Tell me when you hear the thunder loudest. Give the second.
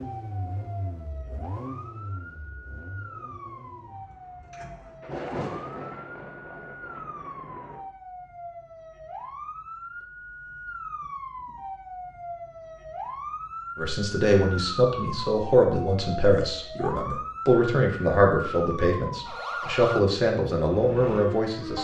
5 s.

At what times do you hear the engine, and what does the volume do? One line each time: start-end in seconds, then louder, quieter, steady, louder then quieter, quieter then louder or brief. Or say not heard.
0.0-5.2 quieter.